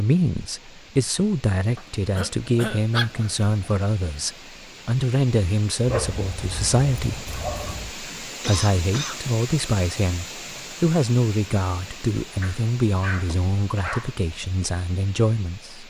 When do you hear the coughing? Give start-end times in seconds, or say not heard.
2.1-2.9, 8.4-9.2.